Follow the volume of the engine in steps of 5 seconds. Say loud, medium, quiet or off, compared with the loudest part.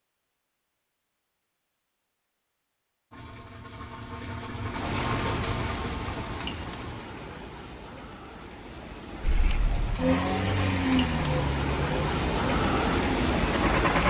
medium, medium, loud.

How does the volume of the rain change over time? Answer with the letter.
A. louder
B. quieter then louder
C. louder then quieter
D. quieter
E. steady
B.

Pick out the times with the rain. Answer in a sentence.
You can hear the rain from 4.7 to 14.0 s.